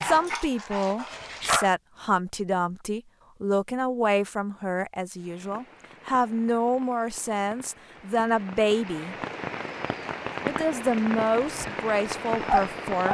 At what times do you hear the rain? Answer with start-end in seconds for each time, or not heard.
5.2-13.1.